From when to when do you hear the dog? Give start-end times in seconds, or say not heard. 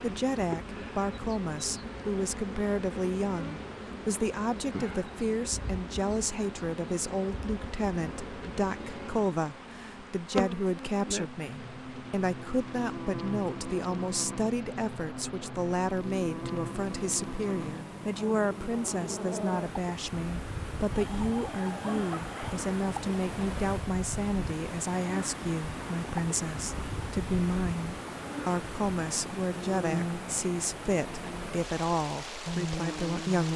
20.9-22.6.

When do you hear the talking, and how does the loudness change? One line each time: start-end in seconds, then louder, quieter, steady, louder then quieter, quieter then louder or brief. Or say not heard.
0.0-33.5 steady.